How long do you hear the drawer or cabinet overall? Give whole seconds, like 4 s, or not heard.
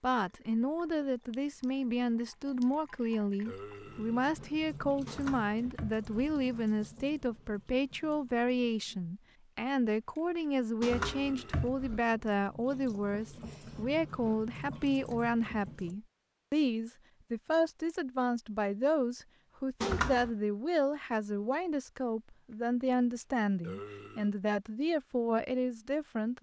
3 s.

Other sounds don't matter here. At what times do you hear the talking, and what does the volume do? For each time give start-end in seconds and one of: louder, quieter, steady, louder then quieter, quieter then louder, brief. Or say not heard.
0.0-26.3 steady.